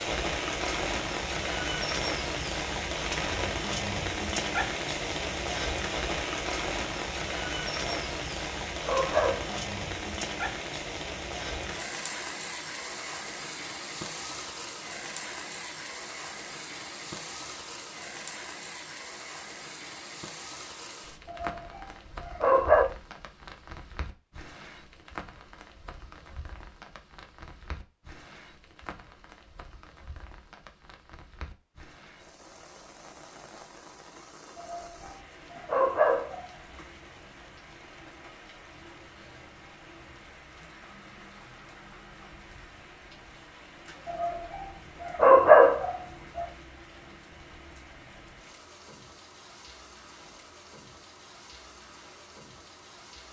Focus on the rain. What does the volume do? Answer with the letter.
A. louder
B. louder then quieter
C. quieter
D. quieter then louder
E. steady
C.